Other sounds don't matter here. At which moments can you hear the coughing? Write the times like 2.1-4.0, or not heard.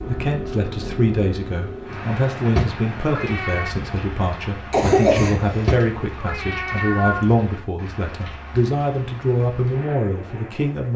4.7-5.8.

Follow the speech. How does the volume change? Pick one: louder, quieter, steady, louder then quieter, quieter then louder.
steady.